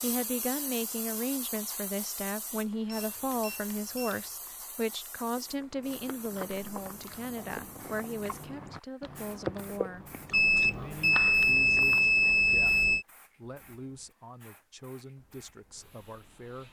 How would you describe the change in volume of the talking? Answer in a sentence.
The volume of the talking goes down.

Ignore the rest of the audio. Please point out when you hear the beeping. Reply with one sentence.
You can hear the beeping from 2.9 to 4.2 s and from 10.3 to 13.1 s.